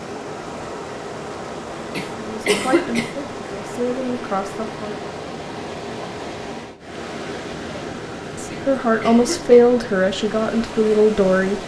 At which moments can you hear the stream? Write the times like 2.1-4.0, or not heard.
0.0-11.6.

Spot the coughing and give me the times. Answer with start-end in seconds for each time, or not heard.
1.9-3.1, 8.5-9.7.